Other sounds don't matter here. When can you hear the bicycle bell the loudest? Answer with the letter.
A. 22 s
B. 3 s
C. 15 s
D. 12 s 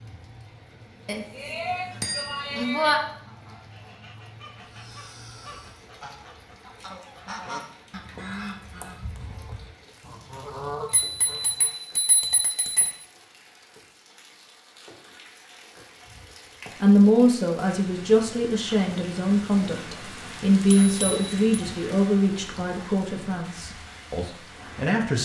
B.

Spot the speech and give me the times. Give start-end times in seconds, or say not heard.
16.8-25.1.